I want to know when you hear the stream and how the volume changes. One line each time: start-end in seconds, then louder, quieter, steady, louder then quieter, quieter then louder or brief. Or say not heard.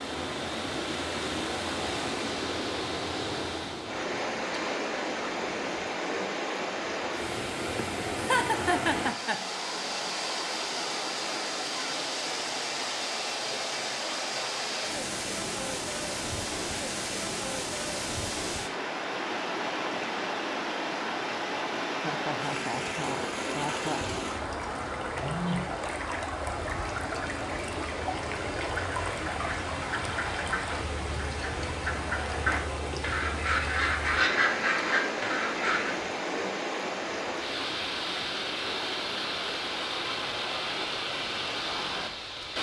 0.0-42.5 steady.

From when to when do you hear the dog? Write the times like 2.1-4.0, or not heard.
not heard.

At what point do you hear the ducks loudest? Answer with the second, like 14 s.
34 s.